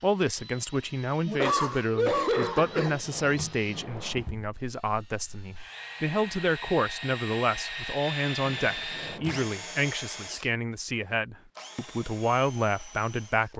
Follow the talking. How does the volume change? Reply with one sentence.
The volume of the talking stays about the same.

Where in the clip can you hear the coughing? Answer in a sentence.
The coughing can be heard from 1.2 to 3.0 s.